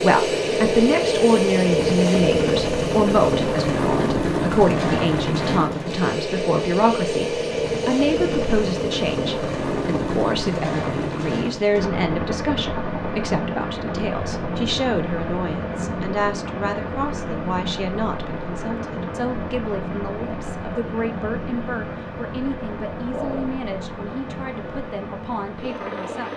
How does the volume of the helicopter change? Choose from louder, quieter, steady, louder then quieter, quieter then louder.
quieter.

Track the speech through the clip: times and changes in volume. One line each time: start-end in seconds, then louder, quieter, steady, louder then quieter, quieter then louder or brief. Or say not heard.
0.0-26.3 quieter.